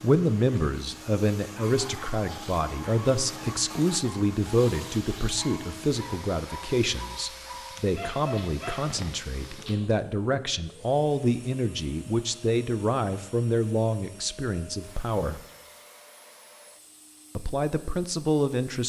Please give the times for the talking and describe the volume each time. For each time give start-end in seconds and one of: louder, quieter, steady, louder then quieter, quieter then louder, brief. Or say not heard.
0.0-15.4 steady
17.4-18.8 brief.